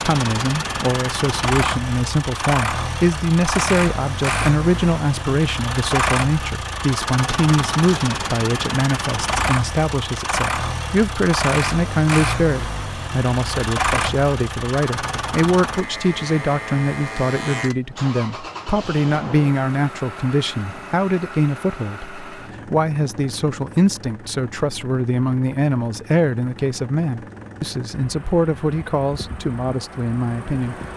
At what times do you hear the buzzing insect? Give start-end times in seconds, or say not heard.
not heard.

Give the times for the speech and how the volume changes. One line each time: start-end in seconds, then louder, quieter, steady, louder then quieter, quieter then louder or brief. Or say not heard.
0.0-30.8 steady.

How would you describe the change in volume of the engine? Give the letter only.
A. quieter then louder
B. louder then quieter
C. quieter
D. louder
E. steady
C.